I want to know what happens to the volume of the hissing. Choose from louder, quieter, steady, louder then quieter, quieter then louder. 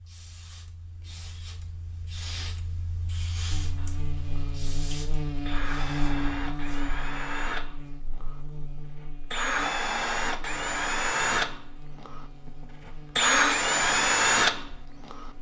louder then quieter.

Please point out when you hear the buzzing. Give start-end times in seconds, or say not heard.
3.5-15.3.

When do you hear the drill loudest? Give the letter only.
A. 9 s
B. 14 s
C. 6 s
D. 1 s
B.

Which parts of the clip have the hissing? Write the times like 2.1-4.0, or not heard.
0.0-6.8.